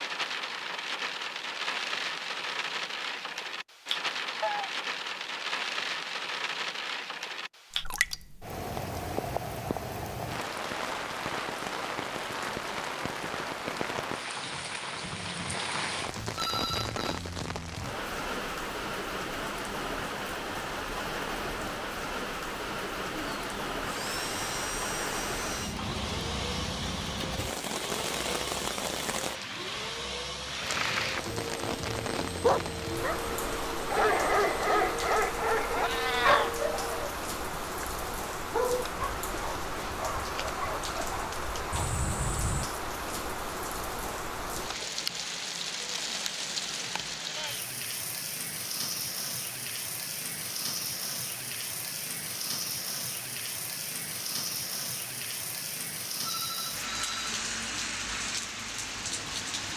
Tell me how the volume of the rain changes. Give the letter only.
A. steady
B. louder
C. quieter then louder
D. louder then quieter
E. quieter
A.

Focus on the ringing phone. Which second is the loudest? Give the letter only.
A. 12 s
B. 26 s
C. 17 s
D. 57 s
C.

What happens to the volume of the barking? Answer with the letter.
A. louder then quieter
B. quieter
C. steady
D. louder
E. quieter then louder
B.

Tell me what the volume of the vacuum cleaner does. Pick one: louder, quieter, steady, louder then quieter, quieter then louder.
steady.